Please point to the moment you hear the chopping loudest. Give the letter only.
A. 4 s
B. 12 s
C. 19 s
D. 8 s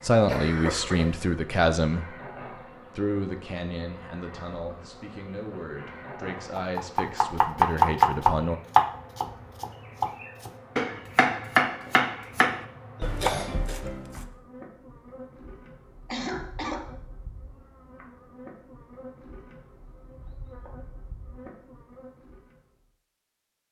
D.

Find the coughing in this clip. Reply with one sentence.
The coughing can be heard from 0.2 to 1.2 s, from 13.0 to 13.8 s and from 16.1 to 16.9 s.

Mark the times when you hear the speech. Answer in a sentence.
The speech can be heard from 0.0 to 2.1 s and from 3.0 to 8.6 s.